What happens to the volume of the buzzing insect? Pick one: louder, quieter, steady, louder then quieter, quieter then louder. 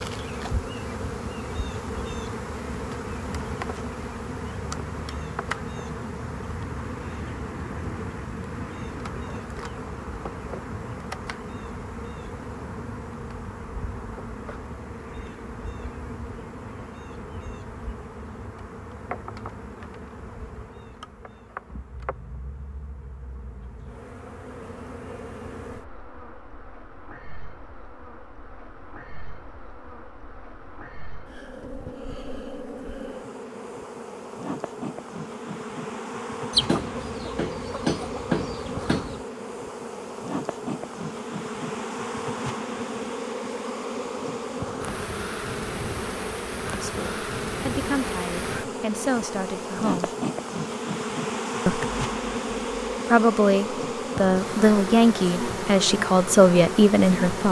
quieter then louder.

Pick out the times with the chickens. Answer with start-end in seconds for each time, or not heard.
36.5-39.2.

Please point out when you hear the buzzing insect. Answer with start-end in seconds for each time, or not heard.
0.0-57.4.